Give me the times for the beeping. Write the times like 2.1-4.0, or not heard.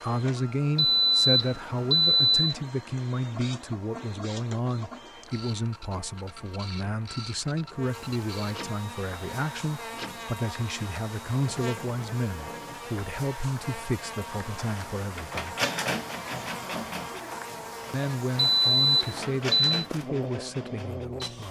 0.8-2.5, 18.4-19.6.